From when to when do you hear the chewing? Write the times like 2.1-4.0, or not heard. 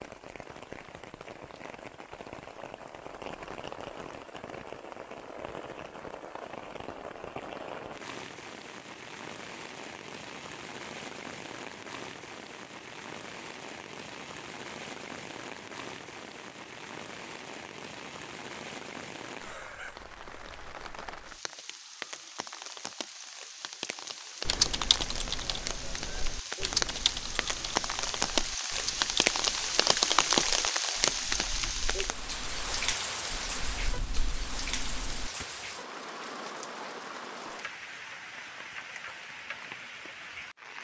not heard.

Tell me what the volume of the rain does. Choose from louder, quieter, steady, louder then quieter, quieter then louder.
louder then quieter.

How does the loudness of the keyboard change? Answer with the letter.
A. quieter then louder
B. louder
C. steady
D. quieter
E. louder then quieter
A.